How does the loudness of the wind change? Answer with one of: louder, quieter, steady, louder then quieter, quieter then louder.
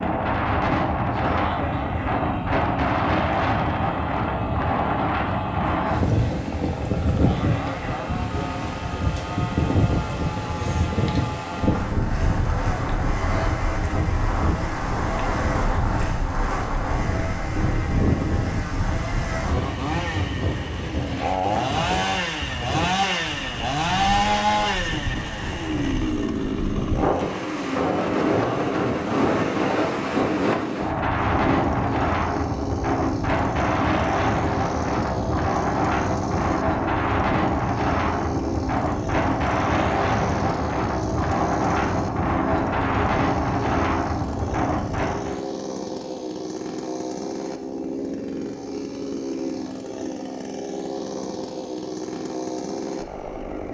quieter then louder.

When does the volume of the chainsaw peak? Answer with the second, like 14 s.
24 s.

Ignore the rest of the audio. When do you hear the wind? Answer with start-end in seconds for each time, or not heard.
0.0-45.4.